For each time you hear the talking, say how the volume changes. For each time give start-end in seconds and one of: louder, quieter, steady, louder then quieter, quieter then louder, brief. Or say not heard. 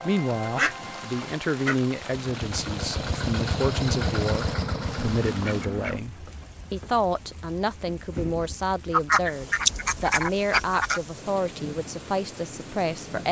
0.0-13.2 steady.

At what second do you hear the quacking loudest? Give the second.
9 s.